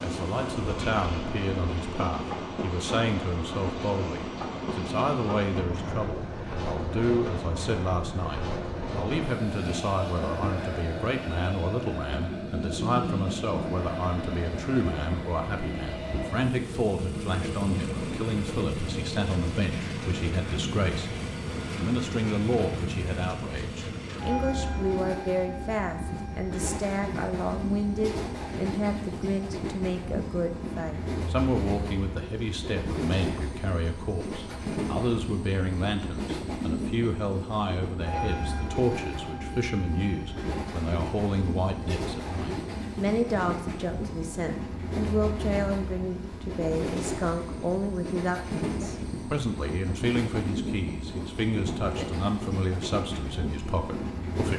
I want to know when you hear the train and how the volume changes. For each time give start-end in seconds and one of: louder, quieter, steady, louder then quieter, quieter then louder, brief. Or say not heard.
0.0-54.5 steady.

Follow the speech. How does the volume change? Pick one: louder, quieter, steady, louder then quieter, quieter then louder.
steady.